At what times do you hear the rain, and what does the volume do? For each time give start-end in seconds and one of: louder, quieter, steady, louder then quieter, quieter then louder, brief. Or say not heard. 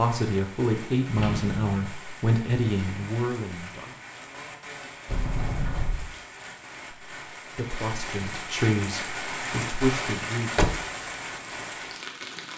0.0-12.5 louder.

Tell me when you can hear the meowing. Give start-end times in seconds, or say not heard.
not heard.